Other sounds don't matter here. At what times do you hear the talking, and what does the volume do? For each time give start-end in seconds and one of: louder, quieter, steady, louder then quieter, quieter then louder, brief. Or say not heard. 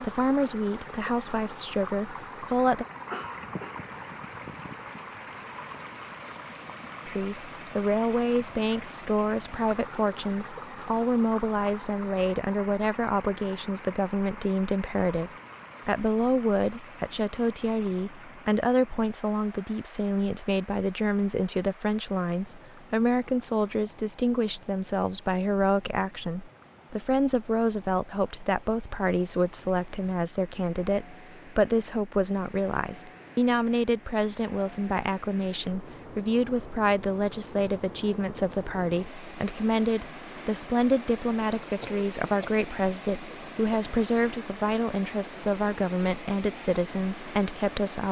0.0-2.9 brief
7.0-48.0 steady.